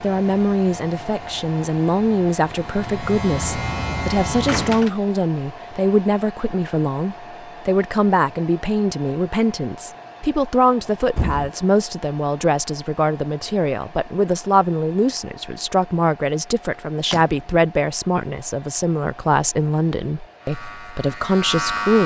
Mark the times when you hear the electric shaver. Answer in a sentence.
You can hear the electric shaver from 0.0 to 4.9 s and from 20.4 to 22.0 s.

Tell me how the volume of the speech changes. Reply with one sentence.
The volume of the speech stays about the same.